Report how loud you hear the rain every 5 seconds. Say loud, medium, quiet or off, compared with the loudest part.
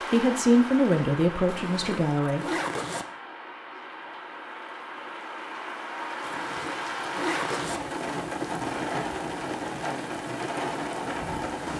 medium, loud, loud.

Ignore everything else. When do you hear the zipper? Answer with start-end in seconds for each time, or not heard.
1.4-3.0, 6.2-7.8.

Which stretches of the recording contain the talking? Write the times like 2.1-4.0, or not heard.
0.0-2.5.